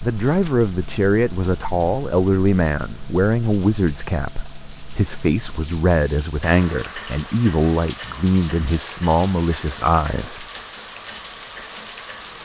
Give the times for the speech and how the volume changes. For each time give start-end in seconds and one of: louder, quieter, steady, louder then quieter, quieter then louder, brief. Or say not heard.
0.0-10.4 steady.